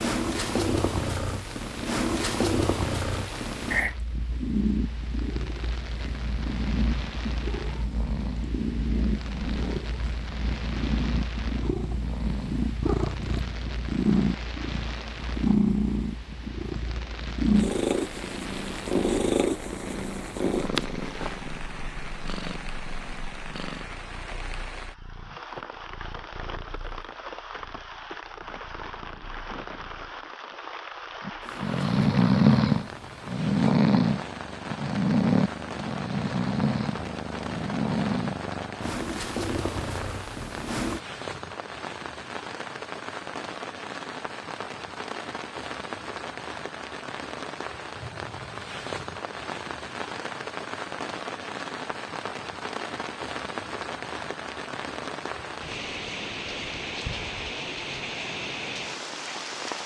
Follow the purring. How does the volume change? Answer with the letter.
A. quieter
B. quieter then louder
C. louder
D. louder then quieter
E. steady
B.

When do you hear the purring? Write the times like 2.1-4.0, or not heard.
0.0-41.0.